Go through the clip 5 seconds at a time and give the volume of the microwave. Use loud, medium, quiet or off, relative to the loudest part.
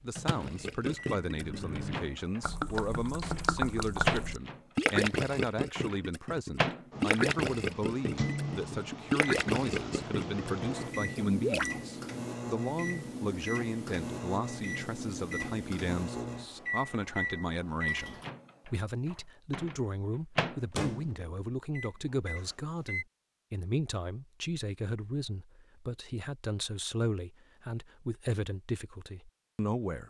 loud, loud, loud, loud, loud, off.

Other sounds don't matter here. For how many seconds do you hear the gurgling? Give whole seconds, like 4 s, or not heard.
11 s.